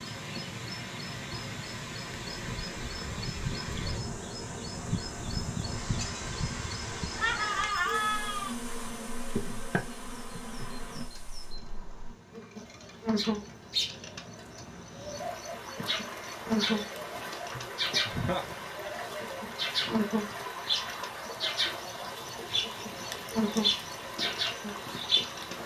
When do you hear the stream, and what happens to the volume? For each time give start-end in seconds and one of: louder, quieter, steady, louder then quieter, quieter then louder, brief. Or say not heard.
0.0-25.6 quieter then louder.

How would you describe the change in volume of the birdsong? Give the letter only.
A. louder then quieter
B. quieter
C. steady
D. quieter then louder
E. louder
E.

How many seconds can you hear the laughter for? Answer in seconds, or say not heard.
2 s.